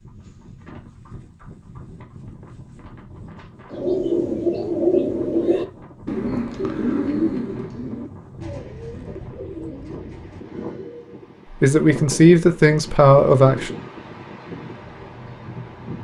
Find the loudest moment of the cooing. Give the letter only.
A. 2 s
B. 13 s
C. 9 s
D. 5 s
D.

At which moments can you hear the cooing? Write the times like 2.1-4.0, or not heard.
3.7-11.2.